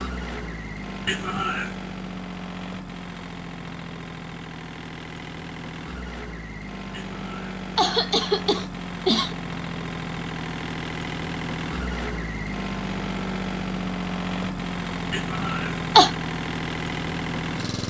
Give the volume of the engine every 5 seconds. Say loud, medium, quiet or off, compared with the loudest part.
medium, medium, loud, loud.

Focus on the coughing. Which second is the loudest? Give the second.
16 s.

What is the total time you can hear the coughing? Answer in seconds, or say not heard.
4 s.